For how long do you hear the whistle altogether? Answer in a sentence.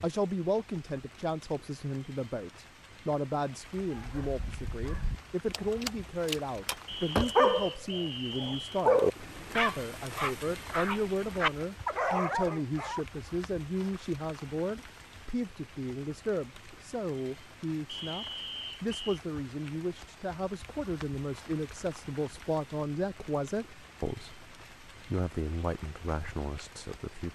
The whistle can be heard for 3 seconds in total.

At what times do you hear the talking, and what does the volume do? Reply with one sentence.
The talking can be heard from 0.0 to 27.3 s, at a steady volume.